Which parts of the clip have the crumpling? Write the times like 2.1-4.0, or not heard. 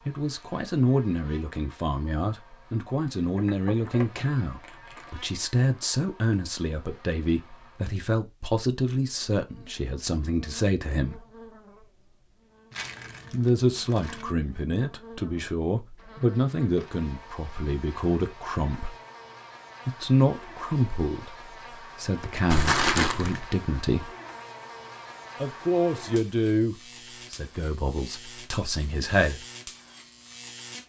3.4-5.1, 12.7-14.2, 22.5-23.5.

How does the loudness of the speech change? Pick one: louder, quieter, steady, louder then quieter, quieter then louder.
steady.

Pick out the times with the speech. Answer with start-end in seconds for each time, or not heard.
0.1-11.2, 13.3-18.9, 19.9-24.1, 25.4-29.4.